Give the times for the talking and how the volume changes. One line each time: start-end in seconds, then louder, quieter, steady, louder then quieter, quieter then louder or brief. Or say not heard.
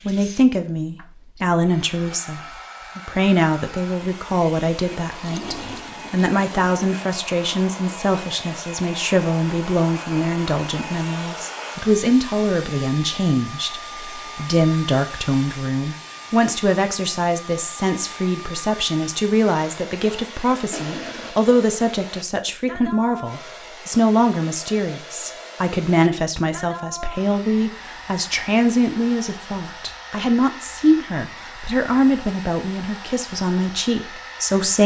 0.1-34.8 steady.